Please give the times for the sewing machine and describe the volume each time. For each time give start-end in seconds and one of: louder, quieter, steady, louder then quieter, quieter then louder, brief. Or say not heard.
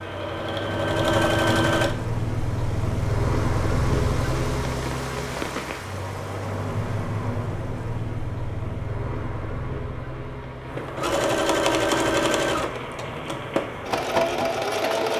0.0-1.9 brief
10.7-15.1 quieter then louder.